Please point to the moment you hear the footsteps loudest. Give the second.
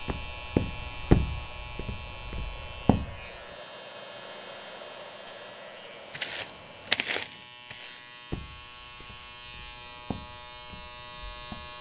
1 s.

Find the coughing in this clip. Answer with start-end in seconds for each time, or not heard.
not heard.